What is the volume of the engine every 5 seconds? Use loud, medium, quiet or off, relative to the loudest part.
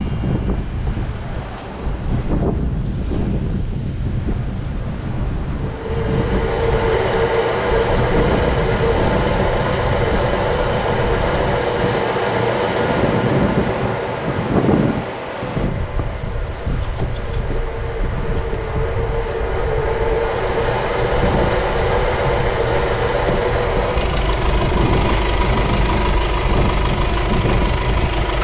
off, loud, loud, medium, loud, loud.